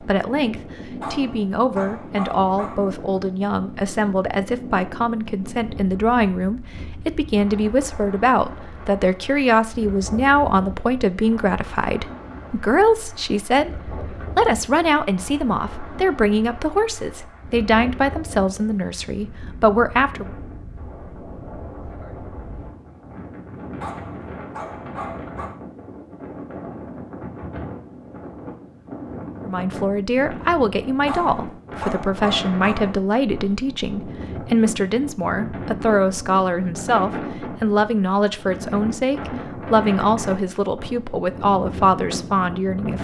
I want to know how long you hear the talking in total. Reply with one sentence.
The talking can be heard for 34 seconds in total.